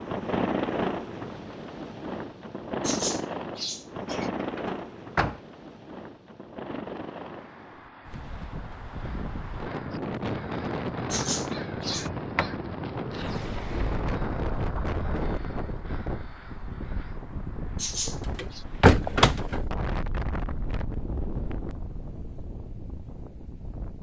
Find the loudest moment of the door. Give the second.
19 s.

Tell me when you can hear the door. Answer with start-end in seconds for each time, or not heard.
4.0-5.4, 11.8-14.2, 18.4-19.6.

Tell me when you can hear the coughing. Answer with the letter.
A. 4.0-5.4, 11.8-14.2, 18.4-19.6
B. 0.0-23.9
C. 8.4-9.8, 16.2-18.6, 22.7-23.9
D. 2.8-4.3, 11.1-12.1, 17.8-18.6
D.